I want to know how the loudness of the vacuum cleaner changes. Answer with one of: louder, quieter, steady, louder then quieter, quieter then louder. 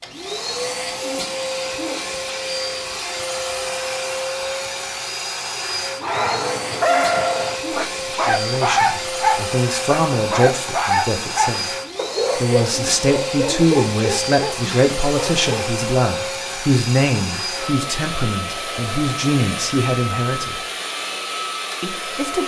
steady.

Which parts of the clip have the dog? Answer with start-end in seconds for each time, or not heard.
6.0-15.7.